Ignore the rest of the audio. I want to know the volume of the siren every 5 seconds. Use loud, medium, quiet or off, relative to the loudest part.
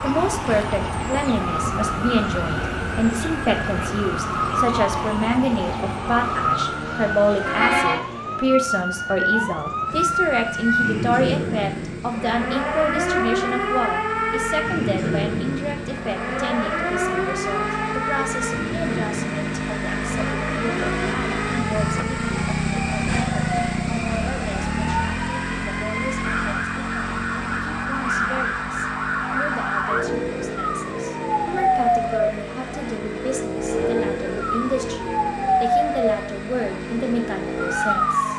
loud, loud, loud, loud, medium, loud, loud, loud.